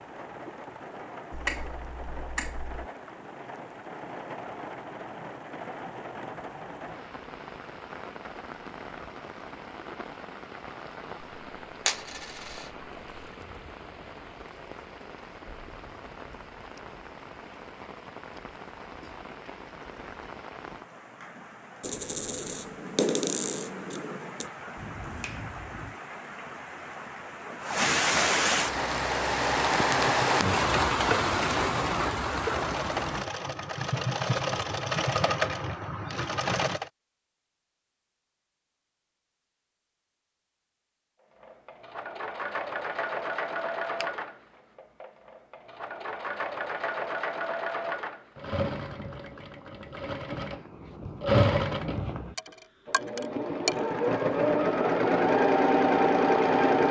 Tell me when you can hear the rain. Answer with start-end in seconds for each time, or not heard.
0.0-33.3.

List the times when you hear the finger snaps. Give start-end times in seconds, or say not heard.
1.3-2.9, 24.8-25.9.